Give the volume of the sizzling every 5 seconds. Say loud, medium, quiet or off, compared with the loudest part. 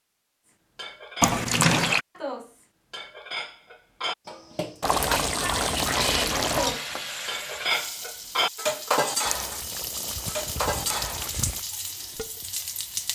off, loud, loud.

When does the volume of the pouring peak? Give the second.
2 s.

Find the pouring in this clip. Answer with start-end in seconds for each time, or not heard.
1.2-2.0, 4.8-6.8, 9.2-11.6.